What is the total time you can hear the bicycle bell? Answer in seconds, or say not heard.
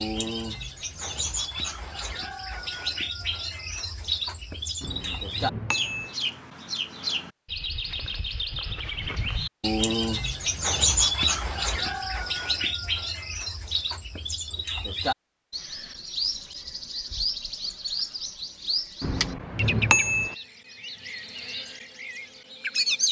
3 s.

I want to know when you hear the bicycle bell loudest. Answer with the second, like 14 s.
20 s.